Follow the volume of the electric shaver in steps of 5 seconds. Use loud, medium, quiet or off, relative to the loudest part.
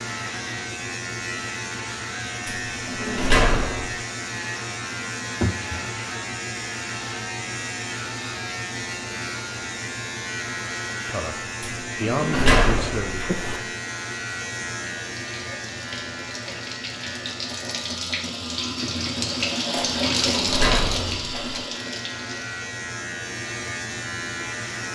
loud, loud, loud, medium, loud.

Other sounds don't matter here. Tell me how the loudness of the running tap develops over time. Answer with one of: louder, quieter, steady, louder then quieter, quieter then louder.
louder then quieter.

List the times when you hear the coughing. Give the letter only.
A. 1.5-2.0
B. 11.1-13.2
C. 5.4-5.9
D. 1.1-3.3
C.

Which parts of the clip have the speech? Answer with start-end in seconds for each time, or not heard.
11.1-13.2.